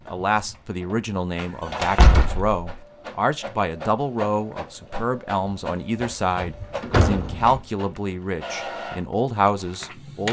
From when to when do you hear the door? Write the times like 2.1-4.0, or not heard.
1.4-2.5, 6.4-7.6.